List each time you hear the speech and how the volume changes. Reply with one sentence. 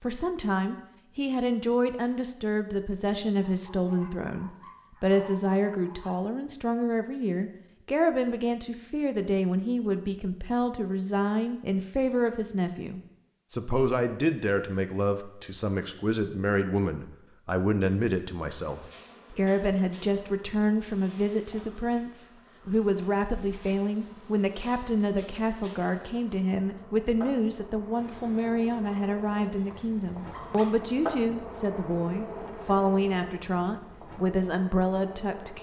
You can hear the speech from 0.0 to 35.5 s, at a steady volume.